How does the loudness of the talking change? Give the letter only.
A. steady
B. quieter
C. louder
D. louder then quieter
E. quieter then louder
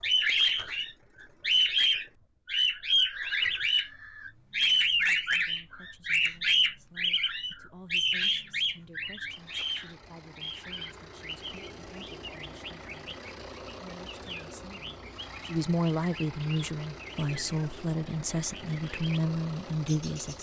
C.